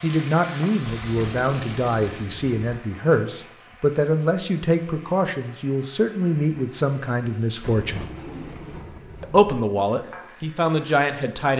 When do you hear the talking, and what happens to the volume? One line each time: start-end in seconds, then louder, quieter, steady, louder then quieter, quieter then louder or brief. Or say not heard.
0.0-8.1 steady
9.2-11.5 brief.